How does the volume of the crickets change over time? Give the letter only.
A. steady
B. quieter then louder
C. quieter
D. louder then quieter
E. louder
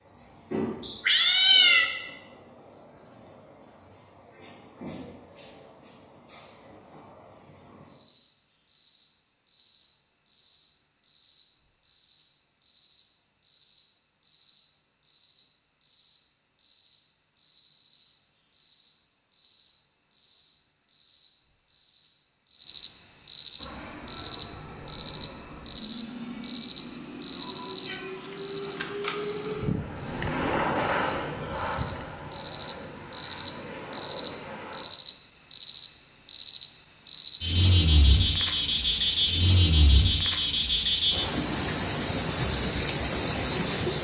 E.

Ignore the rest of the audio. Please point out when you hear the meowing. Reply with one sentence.
The meowing can be heard from 0.8 to 1.9 s and from 27.9 to 29.1 s.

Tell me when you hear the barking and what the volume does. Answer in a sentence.
The barking can't be heard in this clip.